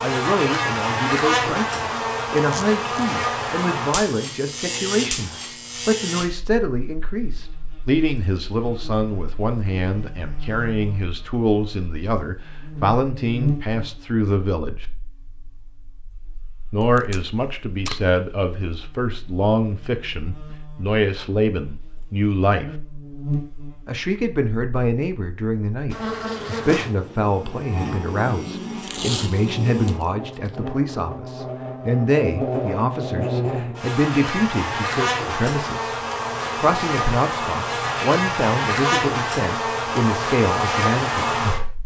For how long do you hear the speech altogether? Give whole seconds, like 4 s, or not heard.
38 s.